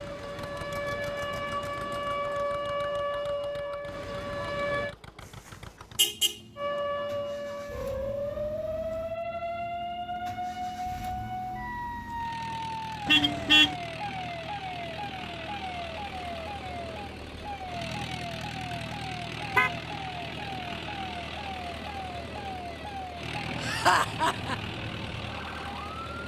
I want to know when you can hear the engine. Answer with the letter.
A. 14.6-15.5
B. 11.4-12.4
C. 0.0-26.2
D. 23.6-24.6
C.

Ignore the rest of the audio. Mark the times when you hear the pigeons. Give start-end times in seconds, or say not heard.
not heard.